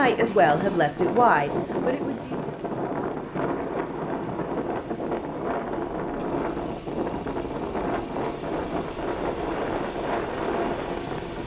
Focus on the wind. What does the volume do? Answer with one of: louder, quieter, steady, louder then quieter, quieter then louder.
steady.